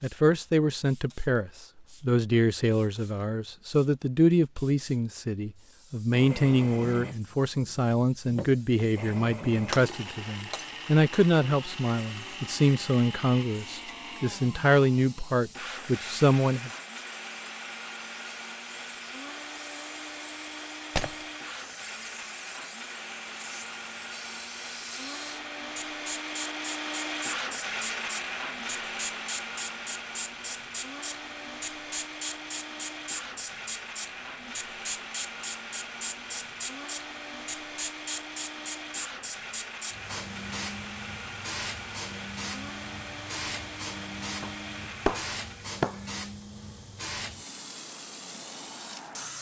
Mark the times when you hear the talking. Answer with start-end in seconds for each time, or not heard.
0.0-16.7.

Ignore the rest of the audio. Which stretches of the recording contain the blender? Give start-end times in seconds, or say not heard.
6.1-45.8.